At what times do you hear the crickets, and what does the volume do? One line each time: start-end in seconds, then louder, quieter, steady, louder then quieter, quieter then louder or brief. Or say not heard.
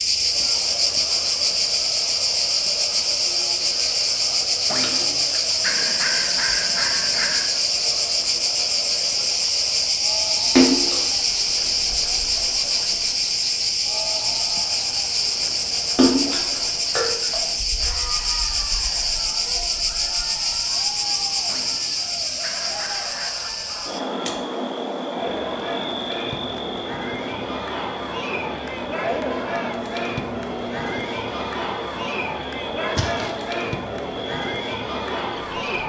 0.0-35.8 quieter.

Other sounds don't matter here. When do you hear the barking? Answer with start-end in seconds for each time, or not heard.
4.7-7.5, 21.4-23.4.